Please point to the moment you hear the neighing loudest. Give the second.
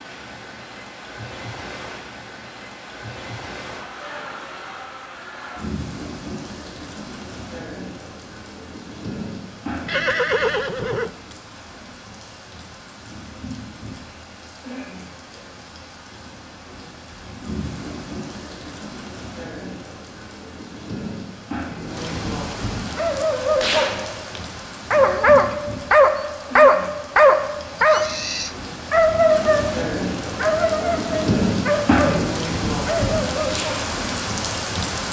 10 s.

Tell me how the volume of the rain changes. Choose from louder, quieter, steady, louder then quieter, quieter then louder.
louder.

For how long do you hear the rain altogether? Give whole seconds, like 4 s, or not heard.
35 s.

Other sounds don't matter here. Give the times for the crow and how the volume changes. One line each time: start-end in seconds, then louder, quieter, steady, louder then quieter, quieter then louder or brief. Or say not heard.
not heard.